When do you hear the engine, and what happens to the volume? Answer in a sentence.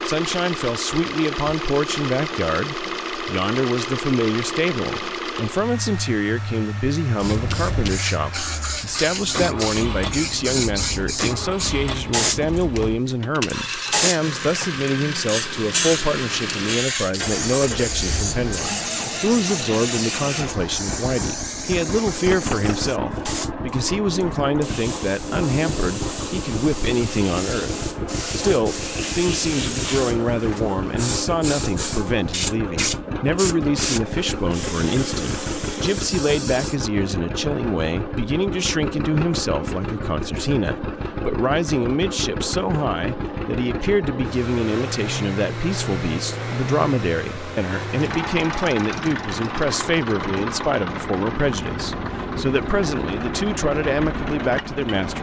You can hear the engine from 0.0 to 55.1 s, at a steady volume.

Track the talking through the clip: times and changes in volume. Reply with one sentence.
You can hear the talking from 0.1 to 55.1 s, at a steady volume.